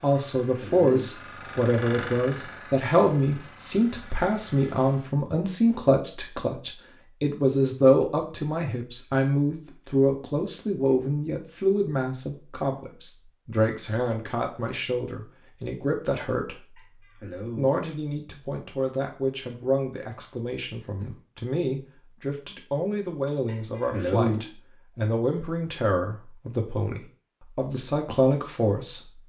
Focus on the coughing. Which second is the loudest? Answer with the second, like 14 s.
24 s.